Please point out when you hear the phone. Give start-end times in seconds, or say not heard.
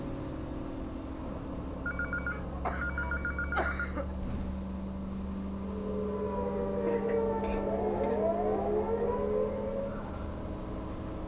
1.9-3.8.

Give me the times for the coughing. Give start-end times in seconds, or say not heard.
2.3-4.2, 6.8-8.2.